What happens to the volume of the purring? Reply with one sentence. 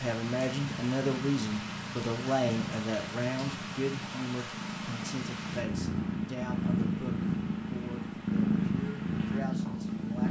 The loudness of the purring goes up.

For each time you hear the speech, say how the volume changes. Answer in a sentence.
You can hear the speech from 0.0 to 10.2 s, getting quieter.